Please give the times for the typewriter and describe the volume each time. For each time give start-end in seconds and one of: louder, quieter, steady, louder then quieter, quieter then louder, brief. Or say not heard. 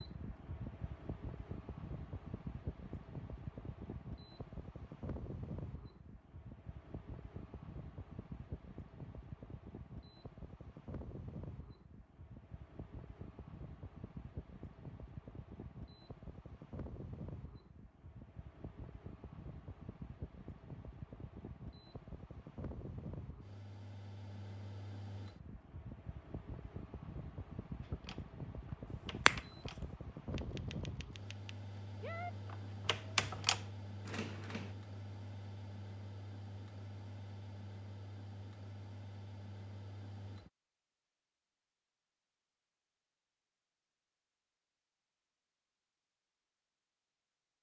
27.8-34.8 quieter then louder.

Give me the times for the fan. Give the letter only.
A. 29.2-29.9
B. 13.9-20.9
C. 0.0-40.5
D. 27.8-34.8
C.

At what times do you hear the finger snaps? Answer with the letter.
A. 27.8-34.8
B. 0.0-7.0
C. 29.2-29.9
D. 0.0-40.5
C.